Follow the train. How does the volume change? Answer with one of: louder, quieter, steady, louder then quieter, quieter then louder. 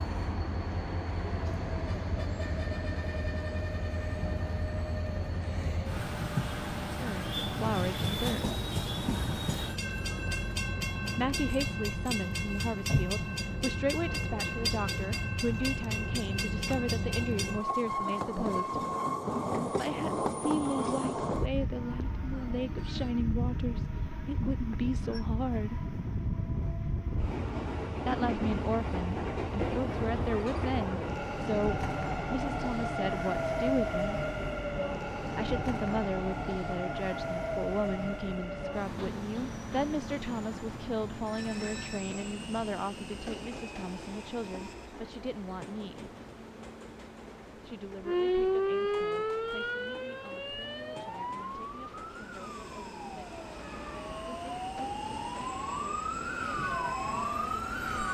quieter.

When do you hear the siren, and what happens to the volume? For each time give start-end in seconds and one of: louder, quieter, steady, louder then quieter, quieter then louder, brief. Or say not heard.
48.0-58.1 quieter then louder.